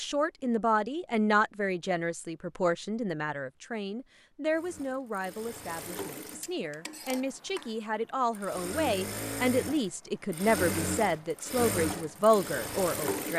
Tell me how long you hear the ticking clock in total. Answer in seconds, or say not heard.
not heard.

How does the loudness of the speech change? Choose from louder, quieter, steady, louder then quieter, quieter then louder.
quieter then louder.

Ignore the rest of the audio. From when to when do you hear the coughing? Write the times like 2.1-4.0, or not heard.
not heard.